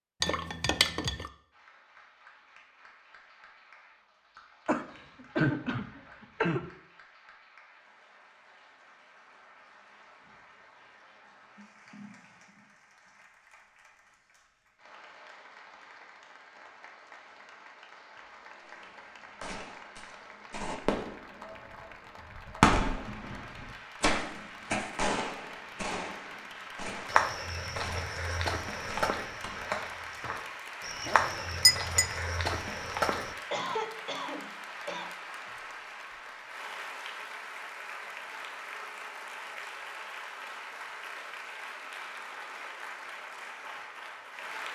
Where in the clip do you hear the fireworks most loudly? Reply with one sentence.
The loudest moment of the fireworks is at 23 seconds.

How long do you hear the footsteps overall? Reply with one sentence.
You can hear the footsteps for 6 seconds altogether.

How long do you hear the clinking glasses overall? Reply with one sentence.
You can hear the clinking glasses for 2 seconds altogether.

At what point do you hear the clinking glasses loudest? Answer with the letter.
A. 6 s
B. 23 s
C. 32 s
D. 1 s
C.